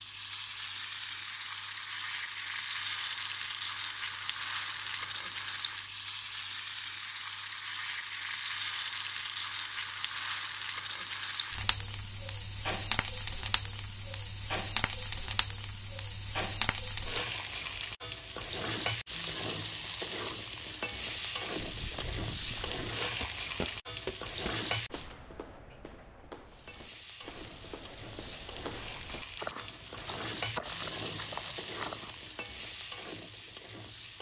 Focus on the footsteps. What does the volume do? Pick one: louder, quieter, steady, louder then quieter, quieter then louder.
quieter then louder.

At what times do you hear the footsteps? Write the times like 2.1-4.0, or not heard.
21.6-32.1.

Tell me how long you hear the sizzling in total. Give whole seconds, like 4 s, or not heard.
33 s.